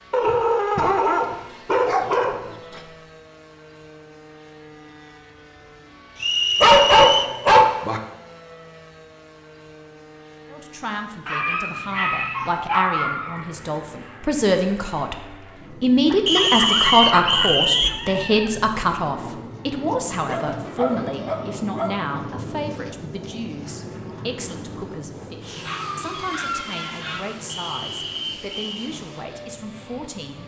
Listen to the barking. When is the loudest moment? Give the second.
7 s.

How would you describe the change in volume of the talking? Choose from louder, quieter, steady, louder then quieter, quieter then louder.
louder then quieter.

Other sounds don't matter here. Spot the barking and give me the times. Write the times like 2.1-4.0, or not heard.
0.1-2.8, 6.6-8.0, 11.2-13.4, 16.1-18.6, 20.2-22.1, 25.6-27.4.